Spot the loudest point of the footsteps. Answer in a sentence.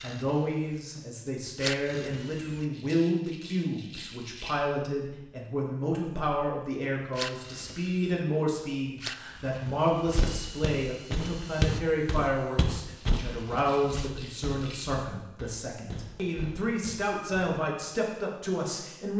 The loudest moment of the footsteps is at 12 seconds.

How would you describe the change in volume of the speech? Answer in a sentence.
The loudness of the speech stays about the same.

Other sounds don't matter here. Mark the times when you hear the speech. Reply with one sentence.
You can hear the speech from 0.0 to 19.1 s.